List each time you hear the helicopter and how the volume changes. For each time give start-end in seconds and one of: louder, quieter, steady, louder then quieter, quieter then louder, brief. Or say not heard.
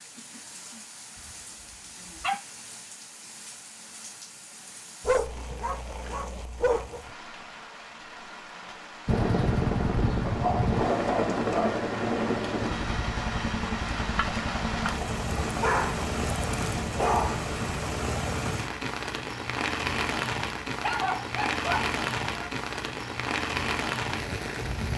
9.1-17.8 quieter.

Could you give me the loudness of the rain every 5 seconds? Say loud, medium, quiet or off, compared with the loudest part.
quiet, quiet, medium, loud, loud.